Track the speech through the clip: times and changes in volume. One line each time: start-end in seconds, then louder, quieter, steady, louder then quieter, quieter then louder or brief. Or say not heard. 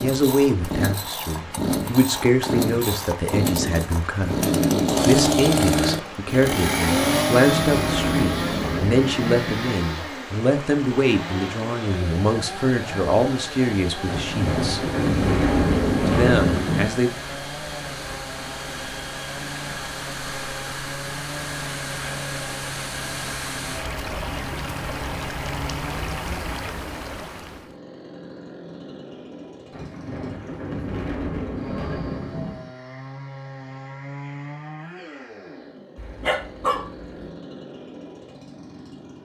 0.0-14.9 steady
16.1-17.1 brief.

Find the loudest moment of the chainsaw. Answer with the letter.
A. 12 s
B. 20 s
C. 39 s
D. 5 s
D.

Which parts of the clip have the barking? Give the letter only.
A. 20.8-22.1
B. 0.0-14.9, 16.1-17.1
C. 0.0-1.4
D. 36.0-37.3
D.